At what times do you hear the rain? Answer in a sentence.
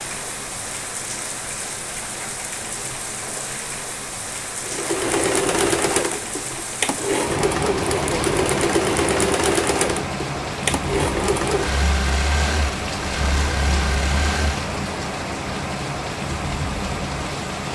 The rain can be heard from 0.0 to 17.6 s.